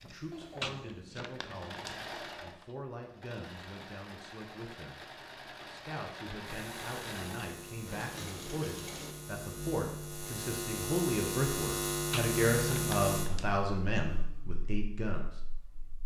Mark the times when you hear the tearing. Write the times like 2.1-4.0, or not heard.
0.6-2.0, 12.1-13.6.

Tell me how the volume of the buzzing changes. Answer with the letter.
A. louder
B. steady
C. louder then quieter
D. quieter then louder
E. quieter
C.